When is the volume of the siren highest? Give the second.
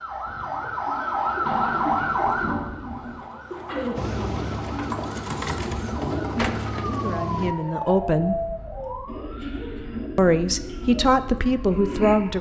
2 s.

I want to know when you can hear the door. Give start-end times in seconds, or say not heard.
1.4-3.2, 6.3-6.8.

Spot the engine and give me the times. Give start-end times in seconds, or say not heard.
4.0-7.5.